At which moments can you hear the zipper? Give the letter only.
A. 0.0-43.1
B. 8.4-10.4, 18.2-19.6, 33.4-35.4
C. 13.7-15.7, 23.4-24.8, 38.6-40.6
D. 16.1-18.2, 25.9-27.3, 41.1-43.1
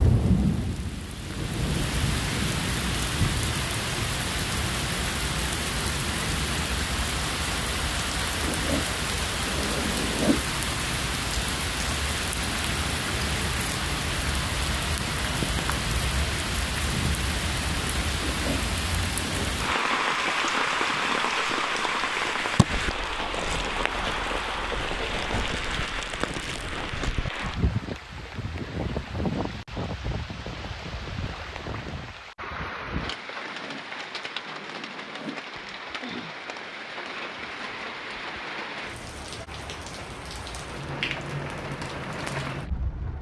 B.